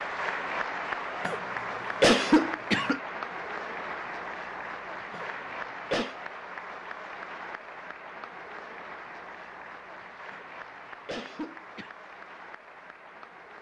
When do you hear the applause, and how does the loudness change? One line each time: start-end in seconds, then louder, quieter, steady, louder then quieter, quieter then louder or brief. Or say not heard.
0.0-13.5 quieter.